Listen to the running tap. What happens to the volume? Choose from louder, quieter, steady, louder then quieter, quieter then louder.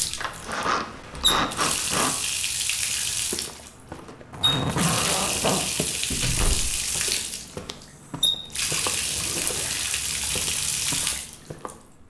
steady.